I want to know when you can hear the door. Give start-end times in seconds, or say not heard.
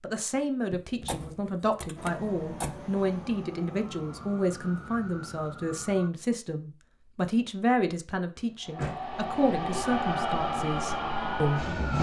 0.7-2.8, 8.3-9.1.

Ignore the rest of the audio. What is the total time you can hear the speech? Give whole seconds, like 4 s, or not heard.
12 s.